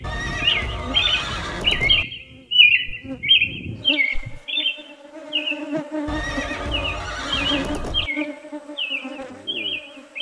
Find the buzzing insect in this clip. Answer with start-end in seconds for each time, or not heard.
0.0-10.1.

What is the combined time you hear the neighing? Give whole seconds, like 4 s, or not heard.
4 s.